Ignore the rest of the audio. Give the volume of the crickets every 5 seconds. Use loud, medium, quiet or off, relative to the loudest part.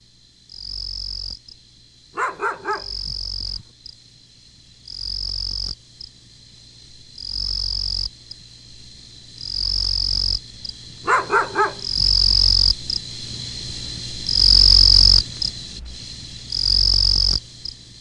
quiet, medium, loud, loud.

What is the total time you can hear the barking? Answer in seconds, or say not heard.
3 s.